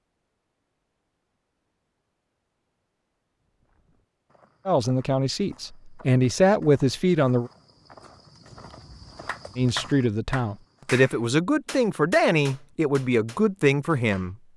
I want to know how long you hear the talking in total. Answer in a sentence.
The talking can be heard for 8 seconds in total.